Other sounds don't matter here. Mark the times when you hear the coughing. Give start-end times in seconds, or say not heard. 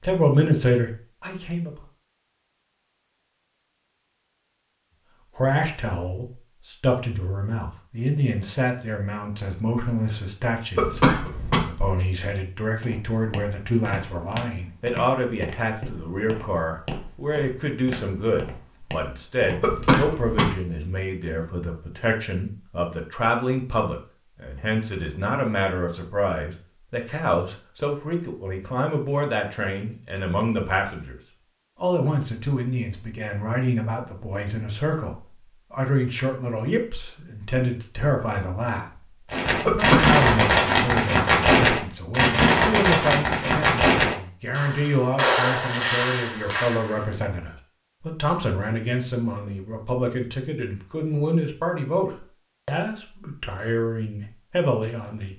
10.8-11.7, 19.6-20.6, 39.6-40.2.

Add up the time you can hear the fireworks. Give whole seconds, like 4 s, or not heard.
8 s.